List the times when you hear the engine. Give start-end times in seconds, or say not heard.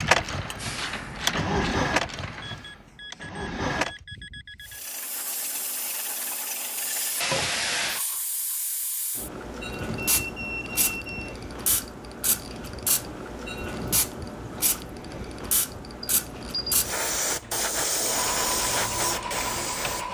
0.0-4.0, 18.1-20.1.